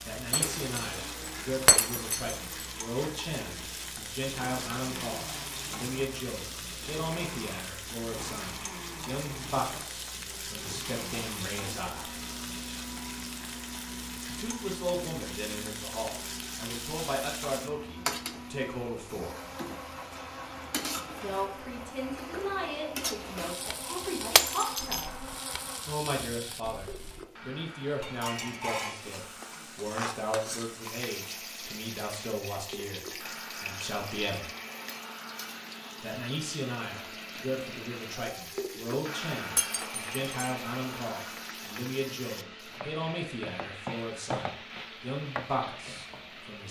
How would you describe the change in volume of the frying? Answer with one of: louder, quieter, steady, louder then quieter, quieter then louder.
steady.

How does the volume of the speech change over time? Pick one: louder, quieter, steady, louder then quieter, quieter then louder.
steady.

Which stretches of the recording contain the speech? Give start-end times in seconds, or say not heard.
0.0-12.2, 14.2-19.4, 21.2-25.1, 25.9-34.5, 36.0-46.6.